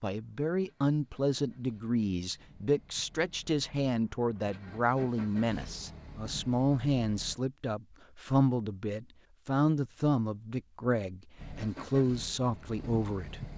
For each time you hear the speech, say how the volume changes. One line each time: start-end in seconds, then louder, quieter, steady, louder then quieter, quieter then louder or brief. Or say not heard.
0.0-13.5 steady.